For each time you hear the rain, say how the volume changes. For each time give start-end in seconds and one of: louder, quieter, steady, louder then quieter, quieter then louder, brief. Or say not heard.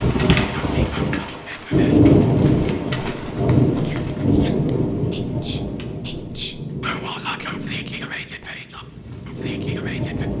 0.0-10.3 quieter.